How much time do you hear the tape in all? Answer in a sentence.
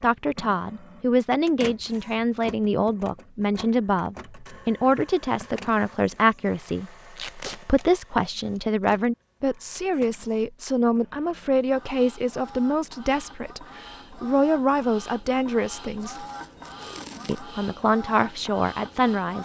You can hear the tape for 2 seconds altogether.